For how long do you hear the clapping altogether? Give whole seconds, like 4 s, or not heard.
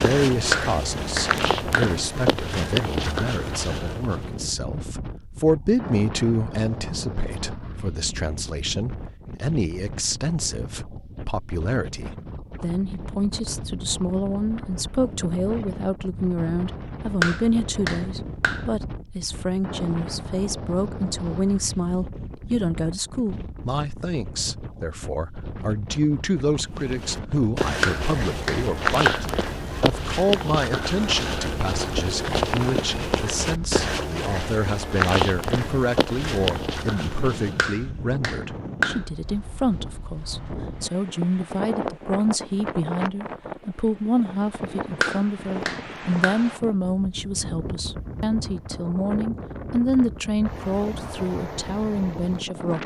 7 s.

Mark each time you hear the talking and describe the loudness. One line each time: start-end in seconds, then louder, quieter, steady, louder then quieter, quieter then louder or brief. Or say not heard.
0.0-52.8 steady.